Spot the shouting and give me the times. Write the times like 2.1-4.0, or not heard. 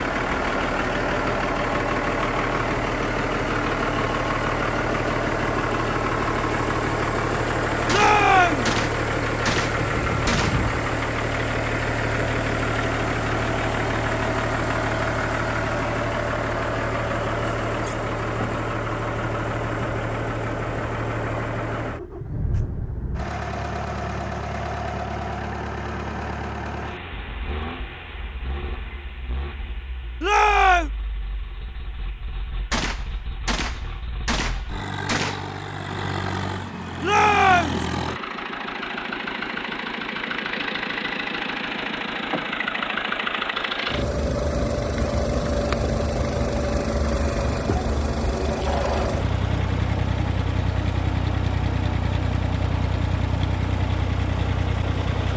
7.8-8.7, 30.2-30.9, 37.0-37.9.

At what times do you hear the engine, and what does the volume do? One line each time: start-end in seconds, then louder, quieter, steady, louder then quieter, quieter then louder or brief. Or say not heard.
0.0-55.3 quieter then louder.